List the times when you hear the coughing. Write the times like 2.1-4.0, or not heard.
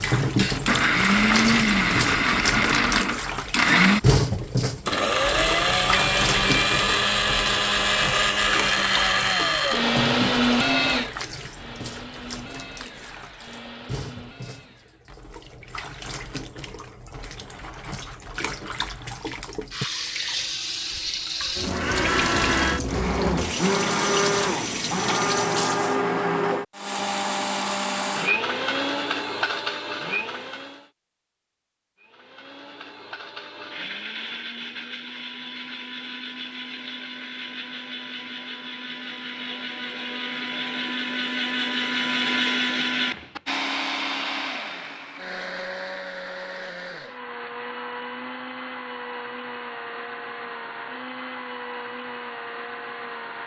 not heard.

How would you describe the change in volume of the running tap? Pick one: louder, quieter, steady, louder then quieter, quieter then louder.
quieter then louder.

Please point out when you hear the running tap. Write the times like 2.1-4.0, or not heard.
0.0-26.0.